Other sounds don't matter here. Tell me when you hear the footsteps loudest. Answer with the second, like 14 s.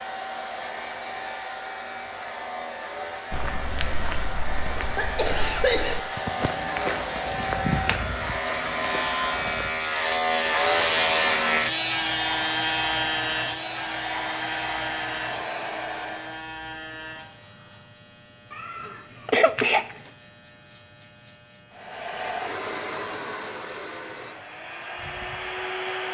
8 s.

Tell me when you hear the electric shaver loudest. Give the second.
11 s.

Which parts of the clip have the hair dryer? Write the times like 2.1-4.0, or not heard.
0.0-16.4, 21.7-26.1.